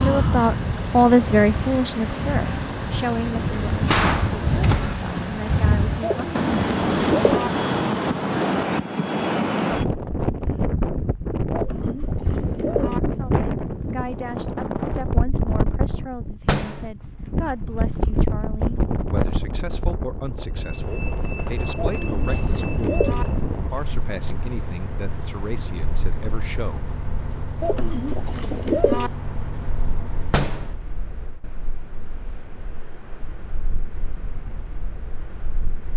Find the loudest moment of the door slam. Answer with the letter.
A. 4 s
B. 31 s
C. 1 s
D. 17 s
A.